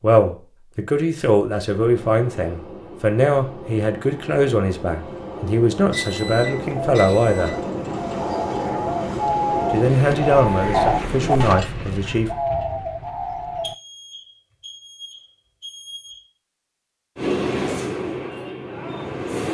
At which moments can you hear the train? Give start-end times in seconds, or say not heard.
1.6-11.6, 17.1-19.4.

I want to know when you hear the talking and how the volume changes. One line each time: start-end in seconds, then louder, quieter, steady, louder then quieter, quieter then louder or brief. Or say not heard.
0.0-7.5 steady
9.7-12.3 brief.